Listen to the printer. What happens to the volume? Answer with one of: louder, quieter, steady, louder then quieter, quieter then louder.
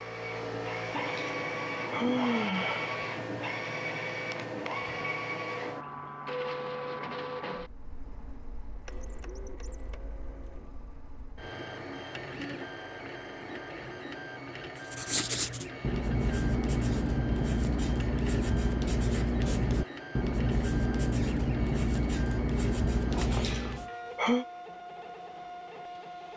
quieter.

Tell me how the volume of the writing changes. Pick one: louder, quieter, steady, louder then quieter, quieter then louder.
steady.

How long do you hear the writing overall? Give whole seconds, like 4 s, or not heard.
9 s.